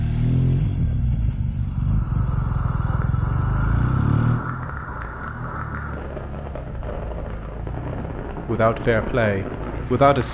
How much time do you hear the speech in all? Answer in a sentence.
The speech can be heard for 2 seconds in total.